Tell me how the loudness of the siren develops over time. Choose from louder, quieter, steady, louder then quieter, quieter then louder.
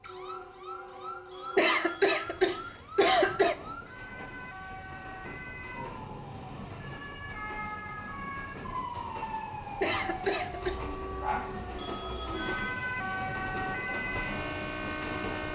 louder.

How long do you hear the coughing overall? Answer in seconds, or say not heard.
3 s.